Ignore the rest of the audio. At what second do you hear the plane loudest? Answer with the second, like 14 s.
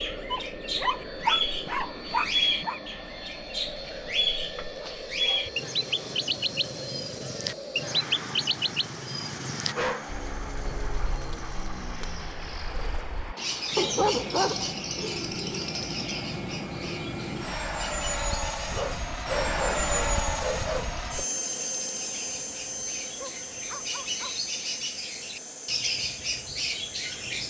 20 s.